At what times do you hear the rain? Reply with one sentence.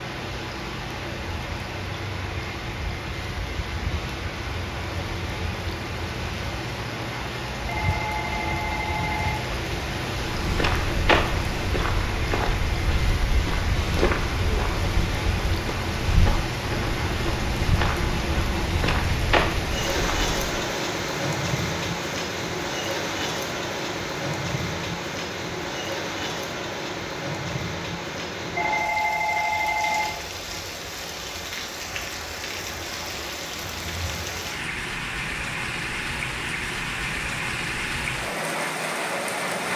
The rain can be heard from 0.0 to 39.7 s.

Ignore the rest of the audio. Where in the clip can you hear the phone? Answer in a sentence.
The phone can be heard from 7.7 to 9.5 s and from 28.6 to 30.1 s.